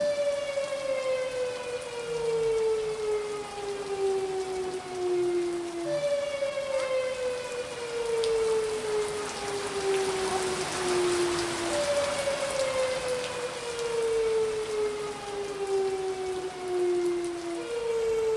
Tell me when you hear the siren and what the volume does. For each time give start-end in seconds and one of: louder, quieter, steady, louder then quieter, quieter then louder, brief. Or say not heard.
0.0-18.3 steady.